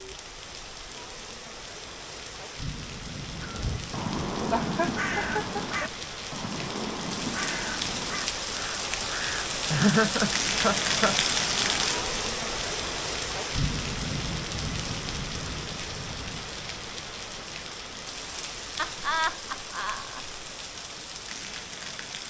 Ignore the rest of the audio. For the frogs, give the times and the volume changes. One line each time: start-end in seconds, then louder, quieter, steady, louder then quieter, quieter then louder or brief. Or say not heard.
not heard.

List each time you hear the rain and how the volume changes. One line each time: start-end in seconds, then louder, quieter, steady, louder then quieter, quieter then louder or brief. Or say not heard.
0.0-22.2 louder then quieter.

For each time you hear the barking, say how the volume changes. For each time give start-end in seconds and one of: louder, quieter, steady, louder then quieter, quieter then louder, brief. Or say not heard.
not heard.